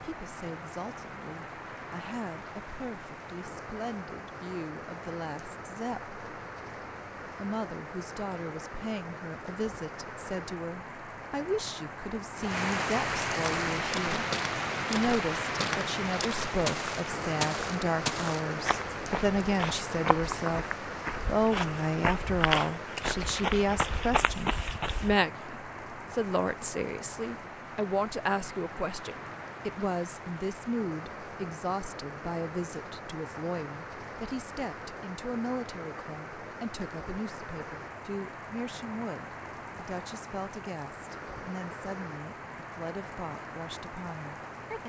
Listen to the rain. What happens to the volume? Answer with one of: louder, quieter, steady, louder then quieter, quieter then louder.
louder then quieter.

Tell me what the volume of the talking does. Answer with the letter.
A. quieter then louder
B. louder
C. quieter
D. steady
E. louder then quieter
E.